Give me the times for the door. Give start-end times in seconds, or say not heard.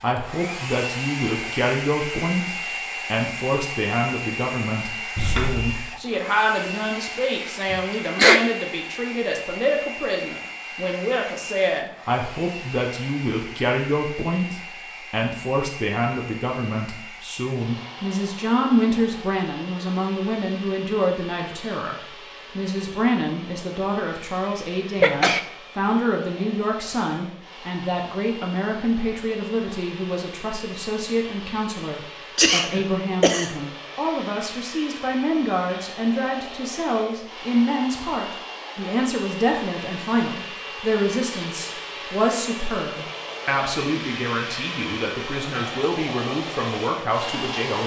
5.2-5.8.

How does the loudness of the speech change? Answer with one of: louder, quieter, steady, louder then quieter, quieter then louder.
steady.